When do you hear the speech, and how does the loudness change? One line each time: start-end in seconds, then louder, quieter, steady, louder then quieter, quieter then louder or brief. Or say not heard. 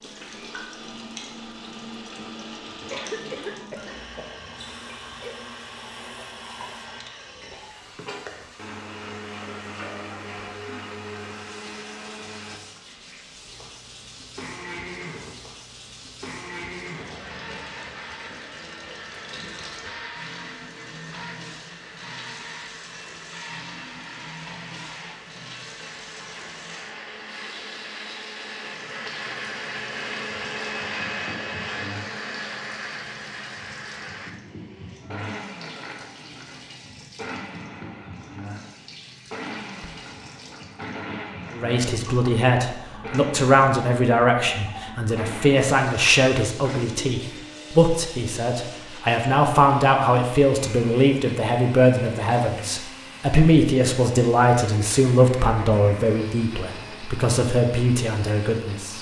41.5-58.9 steady.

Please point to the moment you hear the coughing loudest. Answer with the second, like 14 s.
3 s.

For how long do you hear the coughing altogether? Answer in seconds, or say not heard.
3 s.